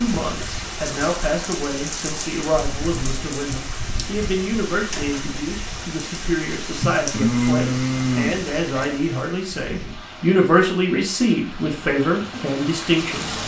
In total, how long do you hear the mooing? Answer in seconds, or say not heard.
2 s.